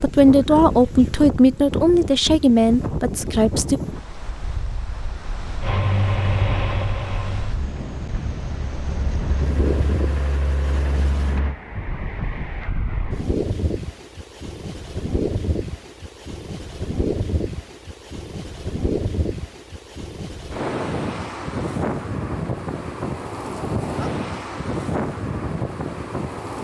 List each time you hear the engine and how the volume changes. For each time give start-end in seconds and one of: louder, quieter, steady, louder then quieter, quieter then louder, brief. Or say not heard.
5.6-11.6 quieter then louder.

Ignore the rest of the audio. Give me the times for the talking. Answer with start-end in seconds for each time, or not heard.
0.0-3.8.